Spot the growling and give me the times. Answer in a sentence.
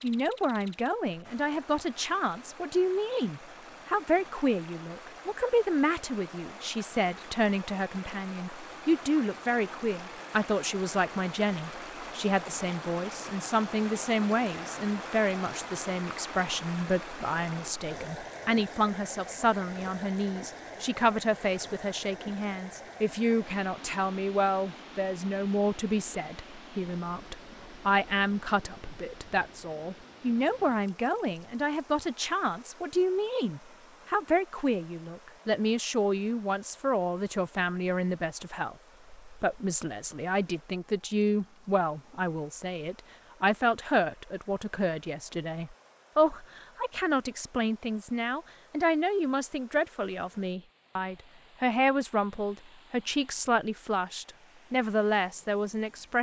You can't hear the growling here.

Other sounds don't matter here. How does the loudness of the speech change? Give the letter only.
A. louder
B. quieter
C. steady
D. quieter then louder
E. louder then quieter
C.